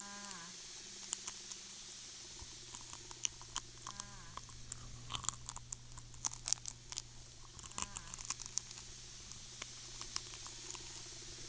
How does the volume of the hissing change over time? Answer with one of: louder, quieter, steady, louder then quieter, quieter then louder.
quieter then louder.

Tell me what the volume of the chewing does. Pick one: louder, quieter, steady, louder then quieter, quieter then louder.
louder then quieter.